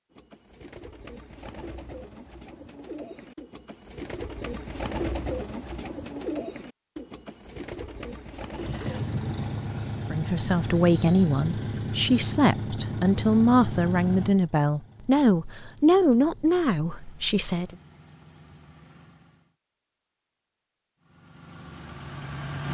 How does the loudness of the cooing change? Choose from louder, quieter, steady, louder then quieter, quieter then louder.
louder then quieter.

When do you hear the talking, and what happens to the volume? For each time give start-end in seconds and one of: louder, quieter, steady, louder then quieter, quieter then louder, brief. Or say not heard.
10.1-17.8 steady.